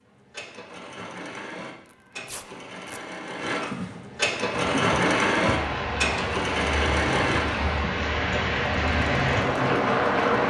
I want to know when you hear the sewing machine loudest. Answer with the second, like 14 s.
5 s.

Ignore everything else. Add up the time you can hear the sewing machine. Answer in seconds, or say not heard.
10 s.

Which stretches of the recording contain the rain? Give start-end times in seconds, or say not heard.
4.5-10.4.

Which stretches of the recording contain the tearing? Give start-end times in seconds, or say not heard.
1.9-3.0.